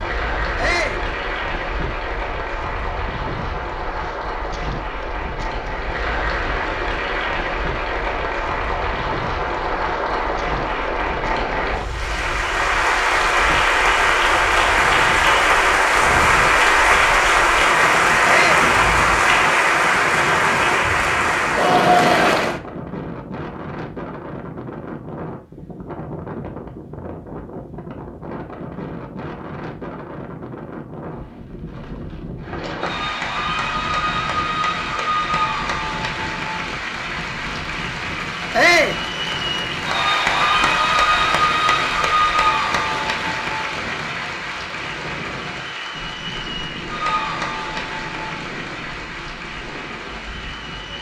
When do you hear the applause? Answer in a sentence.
You can hear the applause from 0.0 to 22.6 s and from 32.4 to 50.9 s.